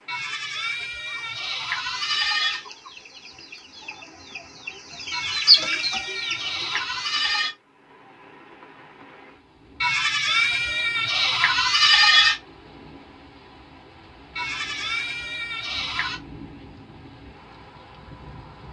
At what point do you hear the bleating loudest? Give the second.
12 s.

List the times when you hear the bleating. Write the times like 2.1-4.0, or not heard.
0.1-2.6, 5.1-7.5, 9.8-12.3, 14.3-16.2.